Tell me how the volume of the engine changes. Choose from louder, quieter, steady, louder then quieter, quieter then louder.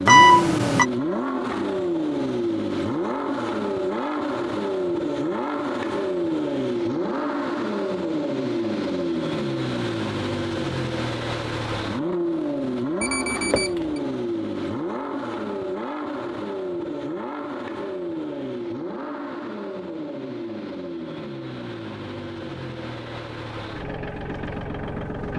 quieter.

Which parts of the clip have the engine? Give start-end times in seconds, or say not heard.
0.0-25.3.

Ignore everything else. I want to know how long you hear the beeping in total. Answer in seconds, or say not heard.
2 s.